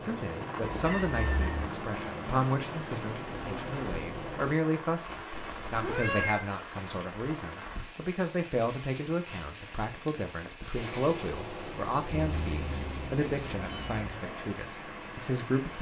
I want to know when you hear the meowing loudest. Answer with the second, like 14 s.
6 s.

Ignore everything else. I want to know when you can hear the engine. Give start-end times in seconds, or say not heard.
0.0-4.5, 10.8-15.7.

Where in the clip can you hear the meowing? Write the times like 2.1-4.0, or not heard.
0.6-1.7, 5.3-6.5, 12.1-14.1.